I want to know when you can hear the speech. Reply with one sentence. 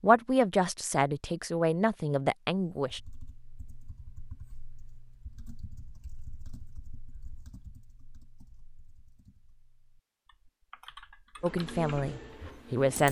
The speech can be heard from 0.0 to 3.0 s and from 11.4 to 13.0 s.